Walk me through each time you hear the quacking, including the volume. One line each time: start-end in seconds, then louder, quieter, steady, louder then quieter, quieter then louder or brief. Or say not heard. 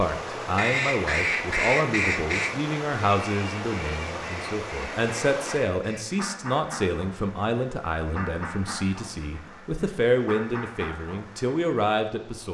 0.6-11.7 quieter.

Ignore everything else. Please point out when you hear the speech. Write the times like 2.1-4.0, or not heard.
0.0-12.5.